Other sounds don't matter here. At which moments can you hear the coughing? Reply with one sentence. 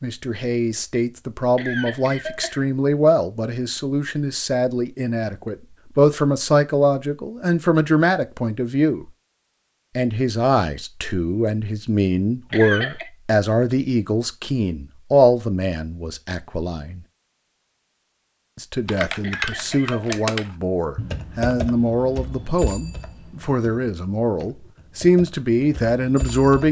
The coughing can be heard from 1.6 to 2.6 s, from 12.5 to 13.1 s and from 19.2 to 20.4 s.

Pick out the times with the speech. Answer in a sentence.
The speech can be heard from 0.0 to 9.1 s, from 9.9 to 17.0 s and from 18.6 to 26.6 s.